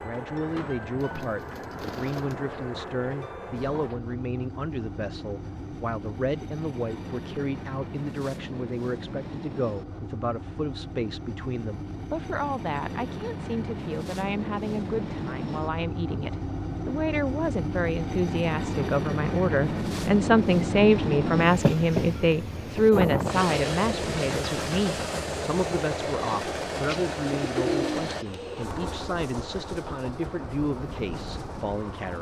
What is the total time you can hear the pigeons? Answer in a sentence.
The pigeons can be heard for 3 seconds in total.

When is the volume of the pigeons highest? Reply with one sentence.
The volume of the pigeons peaks at 28 seconds.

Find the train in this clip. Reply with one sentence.
The train can be heard from 0.0 to 32.1 s.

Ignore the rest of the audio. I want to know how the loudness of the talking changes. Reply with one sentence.
The loudness of the talking goes up, then down.